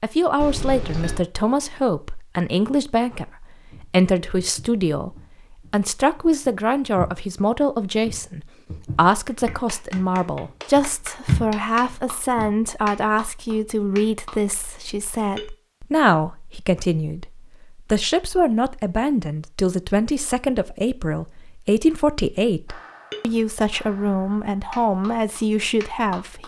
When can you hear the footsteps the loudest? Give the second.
11 s.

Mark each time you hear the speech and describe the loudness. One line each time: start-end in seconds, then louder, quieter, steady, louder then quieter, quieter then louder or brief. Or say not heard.
0.0-26.4 steady.